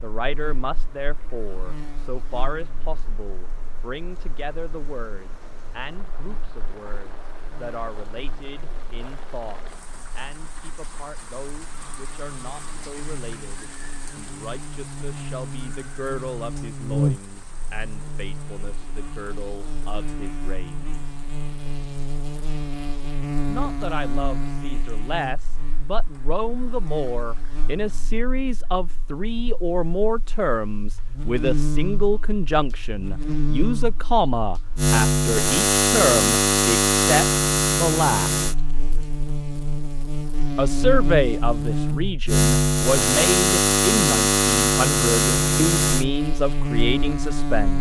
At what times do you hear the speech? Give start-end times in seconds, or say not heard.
0.0-21.1, 23.4-38.5, 40.5-47.7.